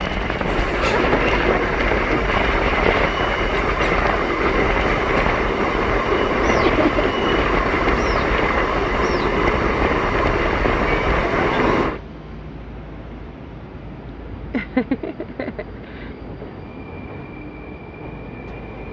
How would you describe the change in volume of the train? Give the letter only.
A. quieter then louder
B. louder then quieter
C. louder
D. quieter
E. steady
D.